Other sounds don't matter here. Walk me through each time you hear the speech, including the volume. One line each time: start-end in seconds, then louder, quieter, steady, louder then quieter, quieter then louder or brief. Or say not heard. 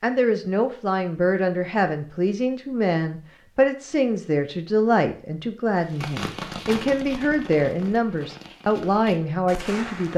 0.0-10.1 steady.